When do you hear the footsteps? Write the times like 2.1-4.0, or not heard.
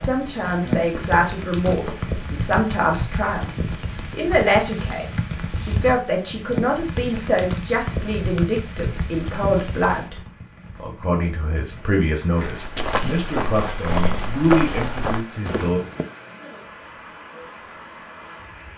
0.0-2.2, 12.3-16.1.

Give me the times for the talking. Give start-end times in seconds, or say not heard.
0.0-3.5, 4.1-10.2, 10.8-15.8.